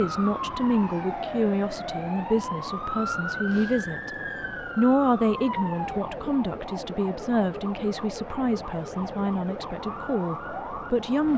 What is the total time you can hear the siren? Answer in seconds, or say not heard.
11 s.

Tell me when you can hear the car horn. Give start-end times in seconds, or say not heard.
not heard.